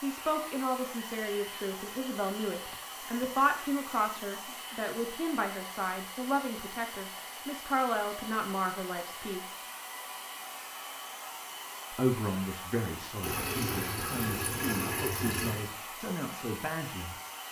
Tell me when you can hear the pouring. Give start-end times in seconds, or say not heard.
13.2-15.7.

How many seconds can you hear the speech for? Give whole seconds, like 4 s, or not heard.
15 s.